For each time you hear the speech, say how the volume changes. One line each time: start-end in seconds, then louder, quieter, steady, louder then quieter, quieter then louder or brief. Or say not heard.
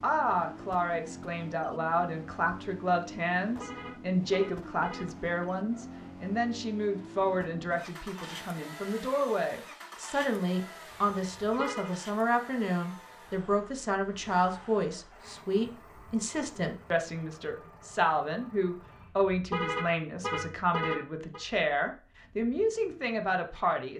0.0-23.9 steady.